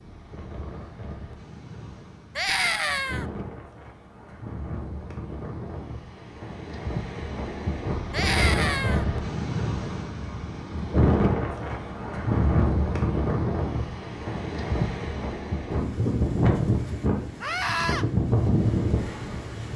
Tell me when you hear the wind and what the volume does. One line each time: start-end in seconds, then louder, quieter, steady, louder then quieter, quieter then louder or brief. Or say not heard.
0.0-19.7 louder.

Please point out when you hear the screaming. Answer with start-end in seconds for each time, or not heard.
2.4-3.2, 8.1-9.1, 17.4-18.1.